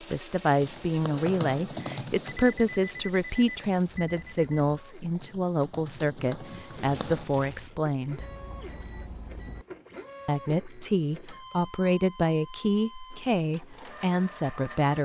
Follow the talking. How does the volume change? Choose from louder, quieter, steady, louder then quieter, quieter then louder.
steady.